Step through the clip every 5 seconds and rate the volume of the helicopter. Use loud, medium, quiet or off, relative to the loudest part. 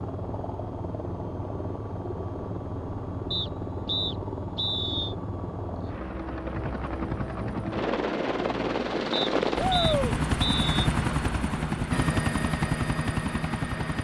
medium, loud, loud.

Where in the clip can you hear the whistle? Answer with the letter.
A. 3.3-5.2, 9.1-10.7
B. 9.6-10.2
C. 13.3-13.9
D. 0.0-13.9
A.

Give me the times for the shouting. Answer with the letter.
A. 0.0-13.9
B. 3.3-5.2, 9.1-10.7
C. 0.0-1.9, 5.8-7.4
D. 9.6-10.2
D.